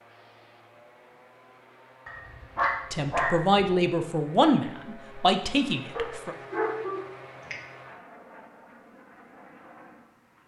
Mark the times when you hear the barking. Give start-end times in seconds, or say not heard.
2.0-3.6, 6.0-7.5.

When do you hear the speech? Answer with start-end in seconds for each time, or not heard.
2.9-6.3.